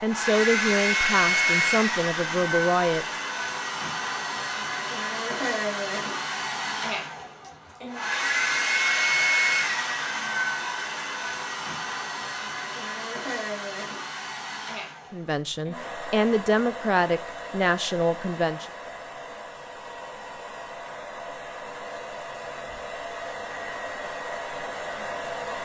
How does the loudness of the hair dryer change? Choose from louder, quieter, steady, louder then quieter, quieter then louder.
quieter.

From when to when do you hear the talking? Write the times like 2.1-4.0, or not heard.
0.0-3.0, 15.1-18.6.